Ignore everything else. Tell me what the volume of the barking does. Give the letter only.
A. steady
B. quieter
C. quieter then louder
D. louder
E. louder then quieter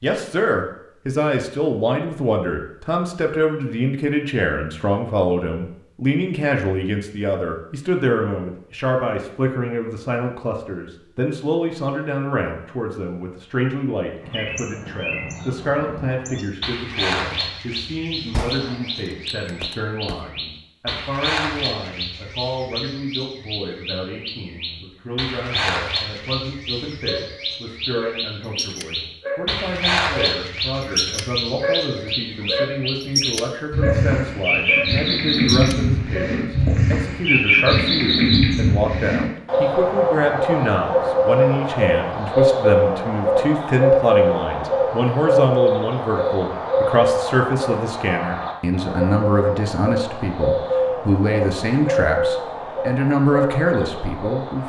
E.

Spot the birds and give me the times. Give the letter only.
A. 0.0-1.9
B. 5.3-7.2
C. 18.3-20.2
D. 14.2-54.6
D.